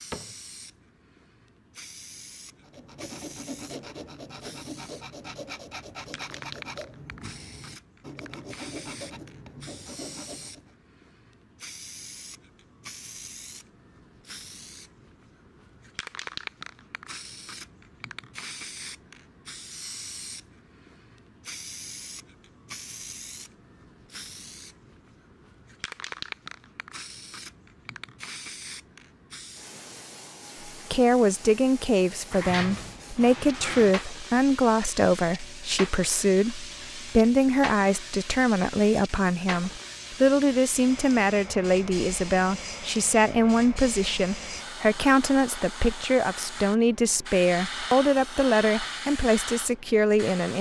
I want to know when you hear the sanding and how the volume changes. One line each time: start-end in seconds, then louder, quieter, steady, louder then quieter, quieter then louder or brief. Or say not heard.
2.6-10.8 steady.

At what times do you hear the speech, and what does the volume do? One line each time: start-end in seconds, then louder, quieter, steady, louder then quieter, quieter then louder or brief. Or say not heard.
30.9-50.5 steady.